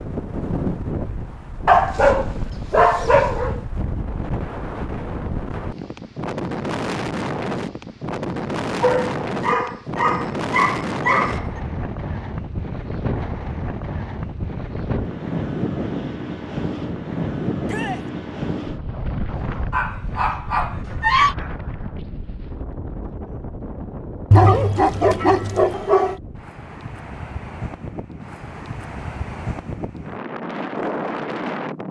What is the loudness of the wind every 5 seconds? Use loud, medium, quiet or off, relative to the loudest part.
loud, loud, loud, loud, medium, medium, loud.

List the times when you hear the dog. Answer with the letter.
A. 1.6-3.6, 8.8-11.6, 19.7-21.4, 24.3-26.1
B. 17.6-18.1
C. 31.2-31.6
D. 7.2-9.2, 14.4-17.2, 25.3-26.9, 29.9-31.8
A.